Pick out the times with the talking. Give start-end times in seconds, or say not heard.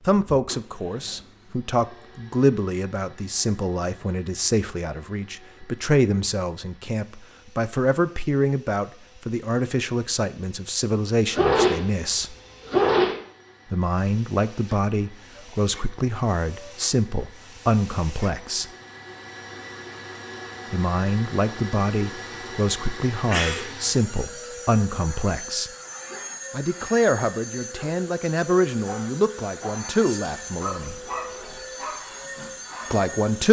0.1-12.3, 13.7-18.7, 20.7-25.7, 26.5-30.9, 32.9-33.4.